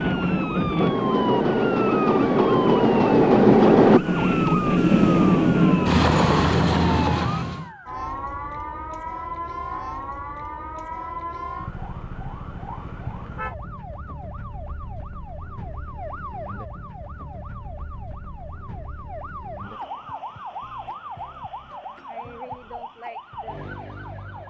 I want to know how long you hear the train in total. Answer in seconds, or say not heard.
8 s.